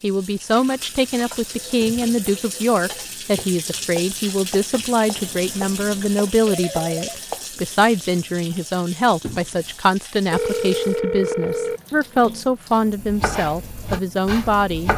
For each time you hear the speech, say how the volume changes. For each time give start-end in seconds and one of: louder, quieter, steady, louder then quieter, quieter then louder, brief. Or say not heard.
0.0-14.9 steady.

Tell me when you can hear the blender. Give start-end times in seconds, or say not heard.
not heard.